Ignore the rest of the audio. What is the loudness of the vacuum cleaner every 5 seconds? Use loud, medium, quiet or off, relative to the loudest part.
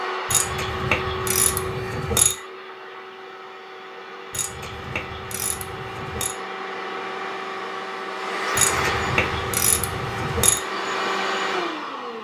medium, loud, loud.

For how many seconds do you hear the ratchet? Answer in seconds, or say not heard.
6 s.